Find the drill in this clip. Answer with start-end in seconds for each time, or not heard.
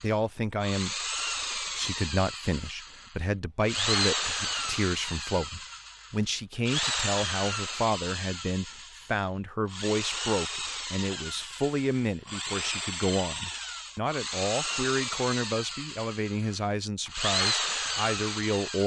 0.0-18.8.